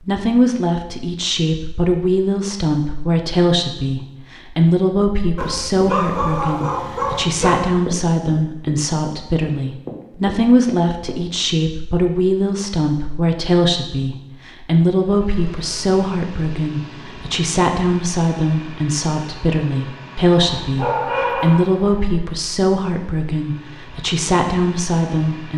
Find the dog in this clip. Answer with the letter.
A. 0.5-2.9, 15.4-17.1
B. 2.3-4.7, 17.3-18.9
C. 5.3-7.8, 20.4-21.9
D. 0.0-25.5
C.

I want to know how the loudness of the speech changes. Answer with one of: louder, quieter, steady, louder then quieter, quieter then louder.
steady.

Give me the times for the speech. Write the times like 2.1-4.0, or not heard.
0.0-25.5.